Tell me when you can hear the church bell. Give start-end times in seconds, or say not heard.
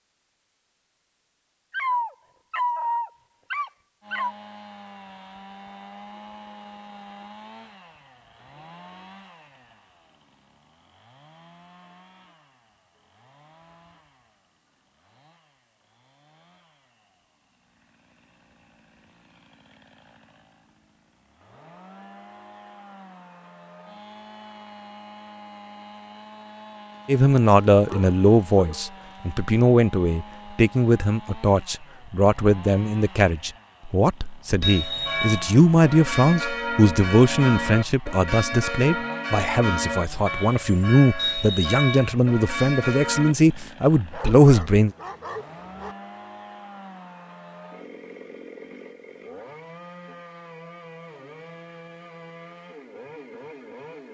34.6-43.4.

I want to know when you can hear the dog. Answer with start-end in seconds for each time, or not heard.
1.7-4.3, 27.7-28.9, 44.1-46.0.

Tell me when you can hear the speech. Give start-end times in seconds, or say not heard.
27.1-44.9.